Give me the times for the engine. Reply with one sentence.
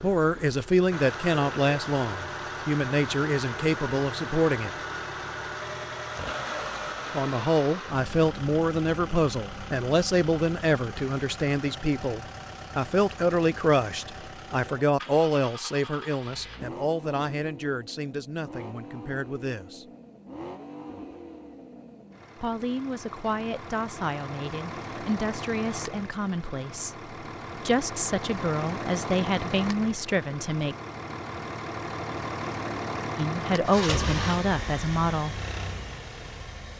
You can hear the engine from 0.0 to 36.7 s.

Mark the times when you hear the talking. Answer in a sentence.
The talking can be heard from 0.0 to 4.8 s, from 7.1 to 19.9 s, from 22.4 to 30.8 s and from 33.1 to 35.4 s.